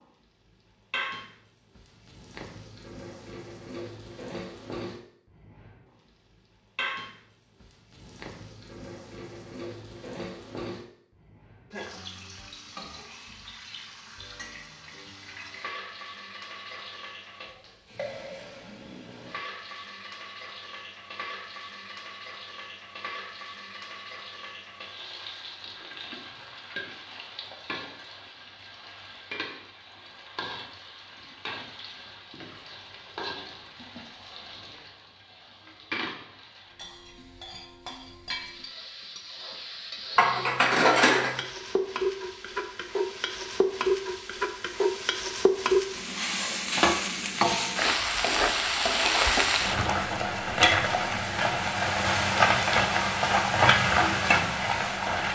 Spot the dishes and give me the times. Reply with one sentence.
The dishes can be heard from 40.1 to 41.4 s.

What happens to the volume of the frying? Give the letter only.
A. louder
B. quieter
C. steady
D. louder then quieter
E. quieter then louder
A.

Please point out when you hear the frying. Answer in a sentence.
You can hear the frying from 0.0 to 55.3 s.